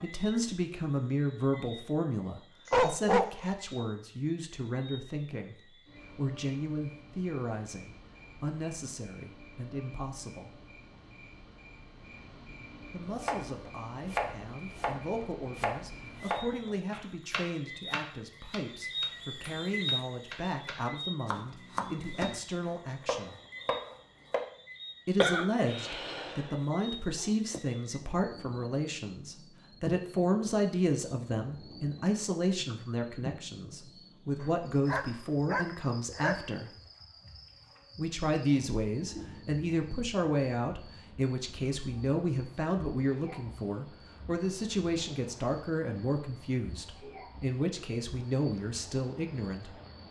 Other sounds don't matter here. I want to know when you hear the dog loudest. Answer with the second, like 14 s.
3 s.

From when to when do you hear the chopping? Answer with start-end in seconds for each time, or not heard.
13.2-24.4.